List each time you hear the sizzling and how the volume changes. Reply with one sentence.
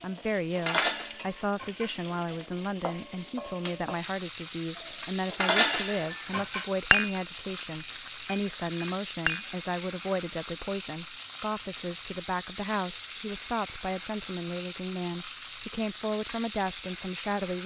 The sizzling can be heard from 0.0 to 17.6 s, at a steady volume.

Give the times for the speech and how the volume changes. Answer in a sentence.
The speech can be heard from 0.0 to 17.6 s, at a steady volume.